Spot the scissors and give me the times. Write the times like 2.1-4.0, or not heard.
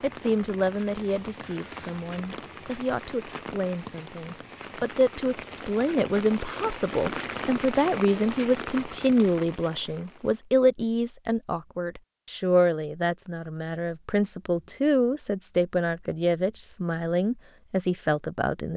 not heard.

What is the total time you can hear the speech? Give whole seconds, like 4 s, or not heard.
19 s.